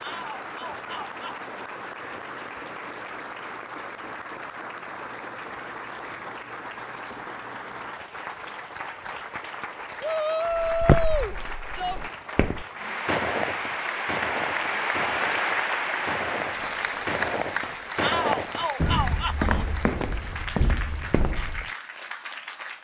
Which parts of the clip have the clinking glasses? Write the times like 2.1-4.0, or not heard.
not heard.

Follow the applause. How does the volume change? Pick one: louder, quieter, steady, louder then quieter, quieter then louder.
louder then quieter.